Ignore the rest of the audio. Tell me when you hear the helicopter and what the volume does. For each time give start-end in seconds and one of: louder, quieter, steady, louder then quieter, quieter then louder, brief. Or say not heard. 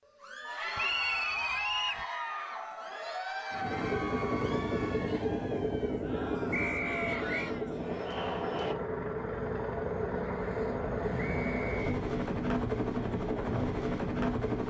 3.5-14.6 steady.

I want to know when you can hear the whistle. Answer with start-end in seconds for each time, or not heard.
0.8-2.0, 6.5-7.5, 11.2-11.8.